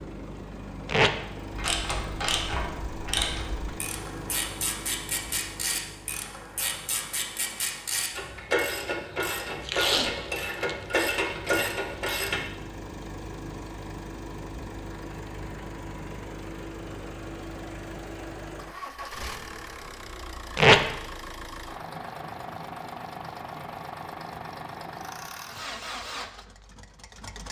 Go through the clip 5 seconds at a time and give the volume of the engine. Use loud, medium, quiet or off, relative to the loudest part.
loud, medium, loud, loud, loud, loud.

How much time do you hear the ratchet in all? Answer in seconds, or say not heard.
11 s.